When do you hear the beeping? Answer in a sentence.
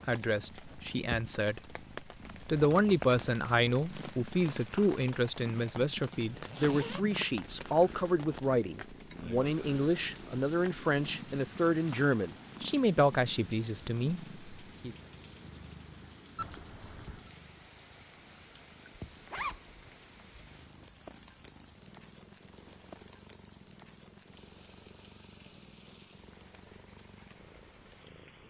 The beeping can be heard from 16.4 to 17.3 s.